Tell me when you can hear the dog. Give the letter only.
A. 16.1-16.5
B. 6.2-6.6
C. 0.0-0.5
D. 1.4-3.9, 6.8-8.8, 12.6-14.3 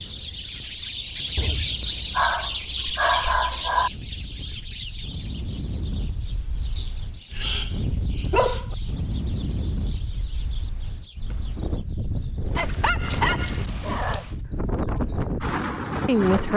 D.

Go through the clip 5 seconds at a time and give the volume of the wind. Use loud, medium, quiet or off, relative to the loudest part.
quiet, medium, medium, loud.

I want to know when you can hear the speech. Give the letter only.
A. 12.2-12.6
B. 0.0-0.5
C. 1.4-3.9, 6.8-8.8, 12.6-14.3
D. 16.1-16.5
D.